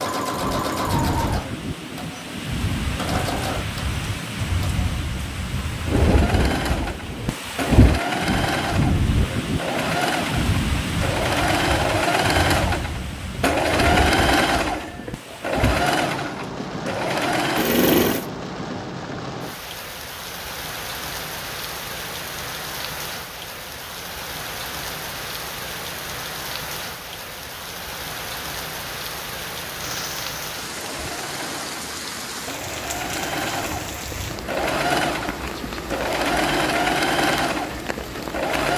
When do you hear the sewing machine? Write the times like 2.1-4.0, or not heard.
0.0-18.3, 29.8-38.7.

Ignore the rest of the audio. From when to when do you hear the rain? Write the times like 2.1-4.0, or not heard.
0.2-38.6.